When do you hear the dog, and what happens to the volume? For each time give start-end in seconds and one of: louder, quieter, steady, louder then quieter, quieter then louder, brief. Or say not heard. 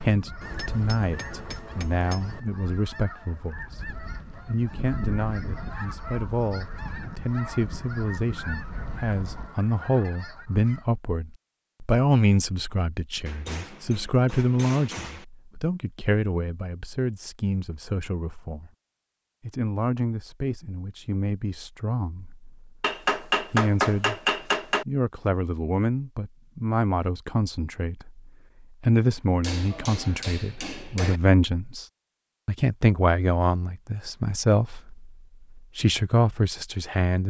not heard.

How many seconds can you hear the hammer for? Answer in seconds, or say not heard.
8 s.